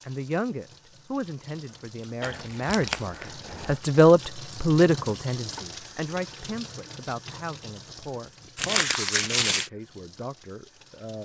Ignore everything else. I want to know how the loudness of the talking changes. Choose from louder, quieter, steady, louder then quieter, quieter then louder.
louder then quieter.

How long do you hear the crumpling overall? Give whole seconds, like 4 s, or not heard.
3 s.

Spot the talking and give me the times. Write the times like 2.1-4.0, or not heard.
0.0-11.2.